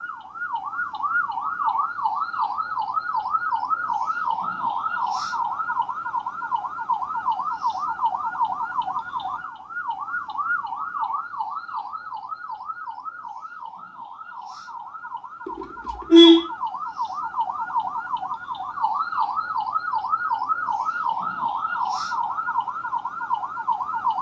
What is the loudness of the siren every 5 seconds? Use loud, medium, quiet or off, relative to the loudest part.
loud, loud, medium, loud, loud.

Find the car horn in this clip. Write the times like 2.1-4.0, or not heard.
15.4-16.4.